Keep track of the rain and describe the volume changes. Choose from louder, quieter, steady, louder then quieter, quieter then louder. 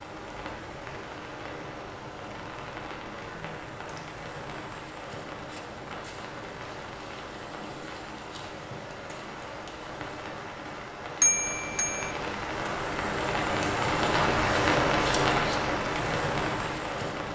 louder.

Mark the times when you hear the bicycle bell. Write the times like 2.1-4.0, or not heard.
11.2-12.1.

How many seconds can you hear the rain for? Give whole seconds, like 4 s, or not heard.
17 s.